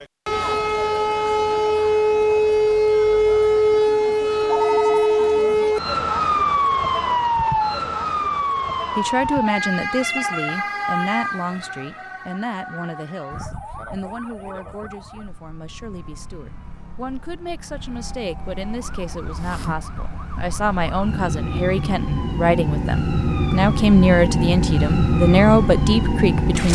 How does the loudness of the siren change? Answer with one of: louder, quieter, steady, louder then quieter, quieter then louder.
quieter then louder.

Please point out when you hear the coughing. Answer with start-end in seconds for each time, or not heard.
not heard.